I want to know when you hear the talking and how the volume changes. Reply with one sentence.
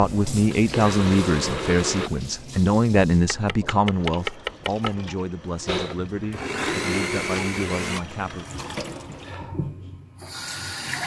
You can hear the talking from 0.0 to 8.4 s, getting quieter.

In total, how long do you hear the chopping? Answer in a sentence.
You can hear the chopping for 2 seconds altogether.